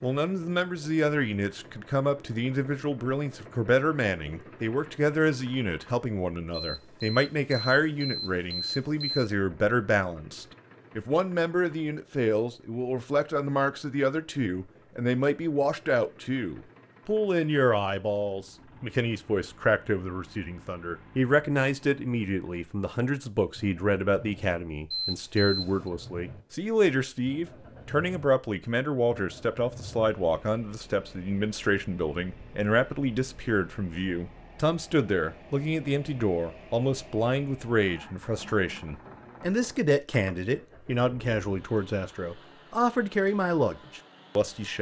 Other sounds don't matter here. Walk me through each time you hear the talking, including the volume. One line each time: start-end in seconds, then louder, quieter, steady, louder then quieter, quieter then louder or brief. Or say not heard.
0.0-44.7 steady.